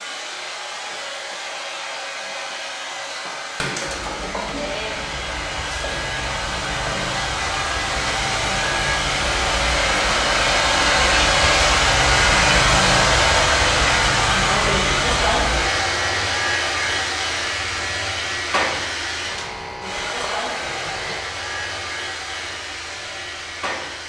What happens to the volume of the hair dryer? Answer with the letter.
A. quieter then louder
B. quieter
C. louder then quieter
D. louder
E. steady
C.